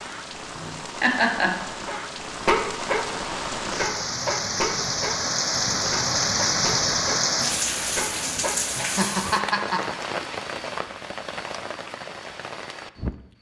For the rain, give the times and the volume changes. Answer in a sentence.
You can hear the rain from 0.0 to 13.2 s, getting louder then quieter.